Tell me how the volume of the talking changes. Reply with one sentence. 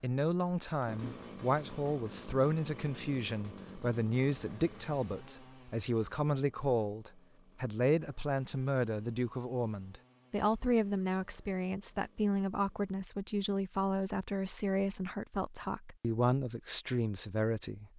The loudness of the talking stays about the same.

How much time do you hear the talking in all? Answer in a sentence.
The talking can be heard for 18 seconds in total.